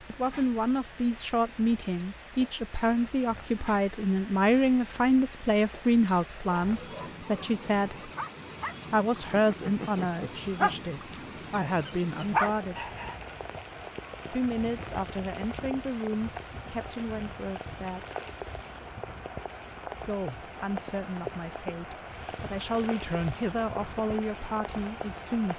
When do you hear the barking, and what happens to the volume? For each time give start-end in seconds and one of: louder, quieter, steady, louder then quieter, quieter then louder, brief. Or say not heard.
6.4-13.2 louder.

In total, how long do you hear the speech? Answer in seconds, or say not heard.
21 s.